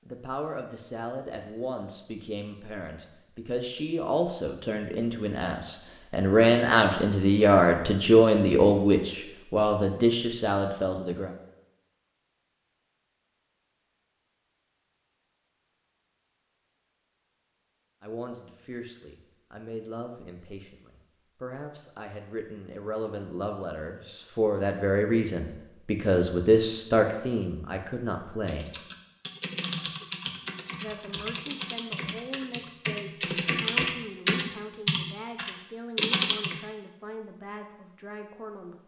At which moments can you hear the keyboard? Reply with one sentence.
You can hear the keyboard from 28.4 to 36.5 s.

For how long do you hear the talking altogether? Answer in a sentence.
The talking can be heard for 30 seconds in total.